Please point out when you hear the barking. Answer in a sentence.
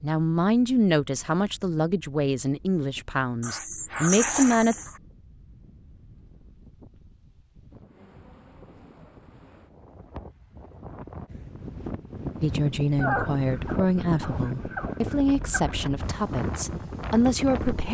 The barking can be heard from 3.4 to 5.0 s and from 13.0 to 15.8 s.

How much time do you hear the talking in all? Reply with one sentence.
The talking can be heard for 10 seconds in total.